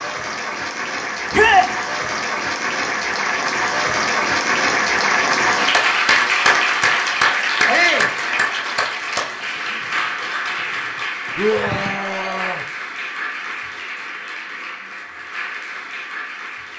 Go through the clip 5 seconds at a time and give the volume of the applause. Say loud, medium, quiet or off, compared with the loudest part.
loud, loud, medium, quiet.